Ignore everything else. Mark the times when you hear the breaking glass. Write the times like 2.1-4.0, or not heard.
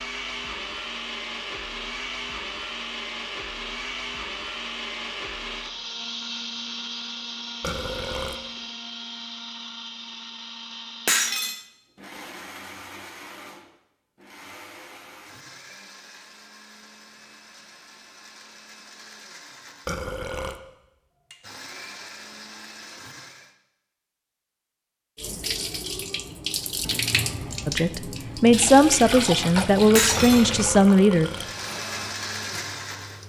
11.1-11.6, 29.9-30.5.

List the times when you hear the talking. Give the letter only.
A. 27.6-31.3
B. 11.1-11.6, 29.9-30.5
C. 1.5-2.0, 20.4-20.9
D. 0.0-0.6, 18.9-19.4
A.